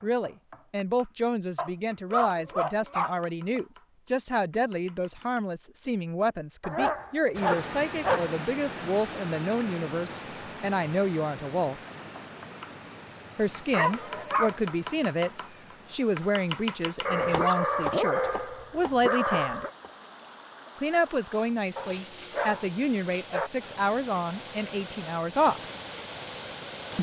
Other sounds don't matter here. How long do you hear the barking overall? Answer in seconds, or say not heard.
9 s.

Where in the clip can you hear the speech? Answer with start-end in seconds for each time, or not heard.
0.0-11.8, 13.3-15.3, 15.9-19.6, 20.8-25.6.